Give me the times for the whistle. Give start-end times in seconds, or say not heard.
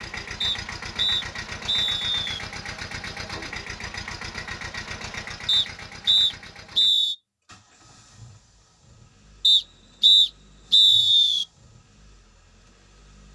0.4-2.4, 5.5-7.2, 9.4-11.4.